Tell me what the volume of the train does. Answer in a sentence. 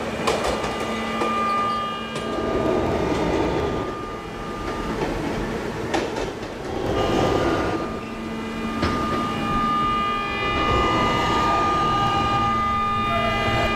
The volume of the train stays about the same.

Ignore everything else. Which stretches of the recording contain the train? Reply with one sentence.
The train can be heard from 0.0 to 13.7 s.